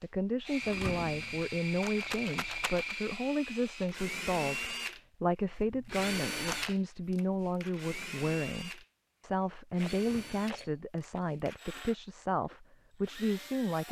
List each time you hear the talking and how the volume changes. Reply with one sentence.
You can hear the talking from 0.0 to 13.8 s, at a steady volume.